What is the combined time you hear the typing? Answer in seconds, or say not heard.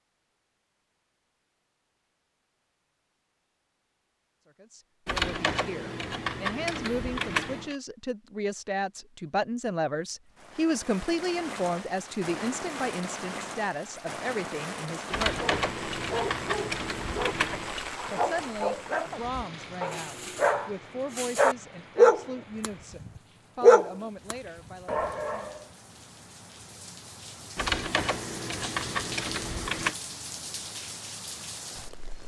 8 s.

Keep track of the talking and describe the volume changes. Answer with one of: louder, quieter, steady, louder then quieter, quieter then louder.
louder then quieter.